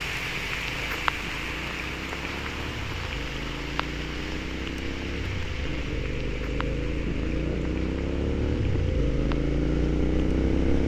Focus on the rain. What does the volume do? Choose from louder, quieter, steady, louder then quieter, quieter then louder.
quieter.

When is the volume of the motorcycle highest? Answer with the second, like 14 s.
10 s.